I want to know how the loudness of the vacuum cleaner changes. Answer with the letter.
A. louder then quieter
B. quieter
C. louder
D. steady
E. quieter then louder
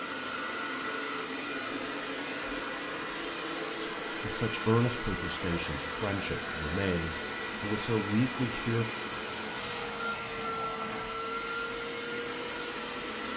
D.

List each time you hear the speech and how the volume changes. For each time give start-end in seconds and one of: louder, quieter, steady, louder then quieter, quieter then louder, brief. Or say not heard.
3.8-8.8 quieter then louder.